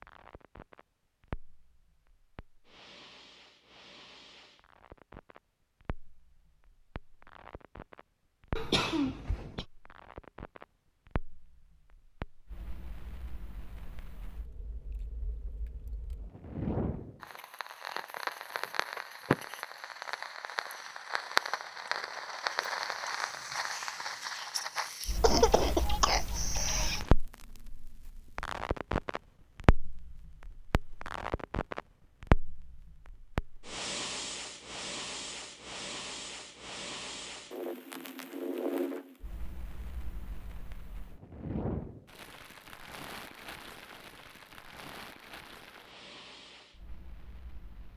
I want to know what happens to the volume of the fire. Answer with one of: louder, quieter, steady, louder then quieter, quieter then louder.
louder then quieter.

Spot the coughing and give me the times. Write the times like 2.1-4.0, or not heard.
8.6-9.7, 25.2-27.1.